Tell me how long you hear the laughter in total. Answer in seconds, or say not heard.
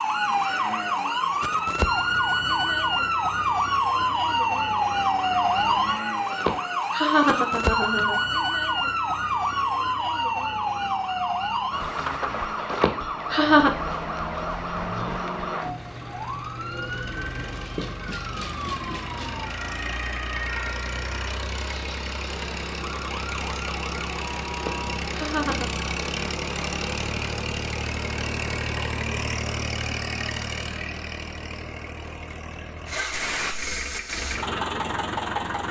4 s.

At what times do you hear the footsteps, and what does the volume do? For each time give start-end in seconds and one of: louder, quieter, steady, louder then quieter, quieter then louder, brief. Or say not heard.
not heard.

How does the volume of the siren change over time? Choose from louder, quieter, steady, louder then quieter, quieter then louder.
quieter.